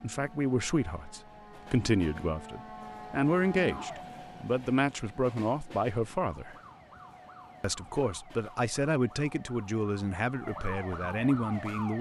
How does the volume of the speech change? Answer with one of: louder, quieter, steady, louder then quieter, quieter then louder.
steady.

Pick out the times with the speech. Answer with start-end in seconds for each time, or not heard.
0.0-6.5, 7.6-11.9.